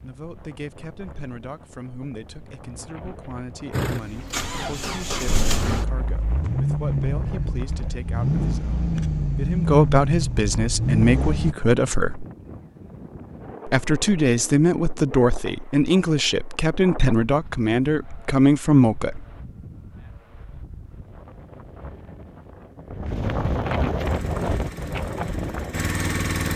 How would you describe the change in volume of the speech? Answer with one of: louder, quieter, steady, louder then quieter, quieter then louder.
louder.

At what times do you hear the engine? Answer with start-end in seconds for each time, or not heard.
3.7-11.6, 24.0-26.5.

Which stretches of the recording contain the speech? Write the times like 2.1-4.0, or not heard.
0.0-12.2, 13.7-19.2.